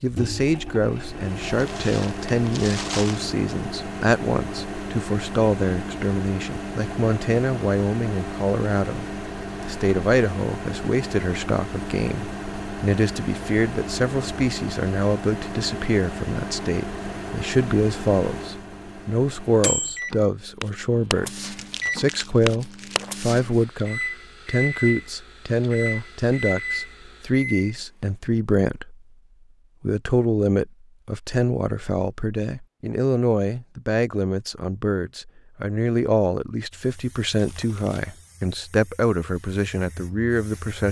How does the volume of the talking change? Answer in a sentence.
The volume of the talking stays about the same.